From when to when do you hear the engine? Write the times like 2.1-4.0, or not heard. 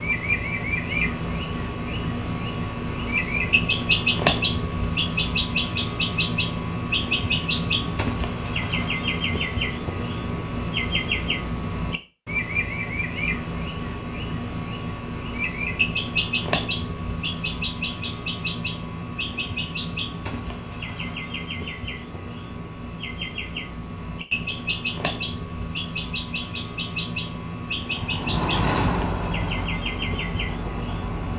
27.8-31.3.